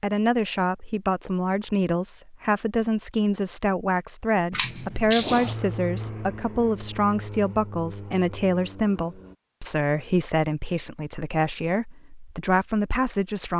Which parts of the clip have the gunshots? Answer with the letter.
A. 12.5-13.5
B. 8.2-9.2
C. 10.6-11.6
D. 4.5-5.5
D.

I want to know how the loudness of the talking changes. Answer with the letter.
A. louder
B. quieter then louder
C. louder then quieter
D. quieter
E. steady
E.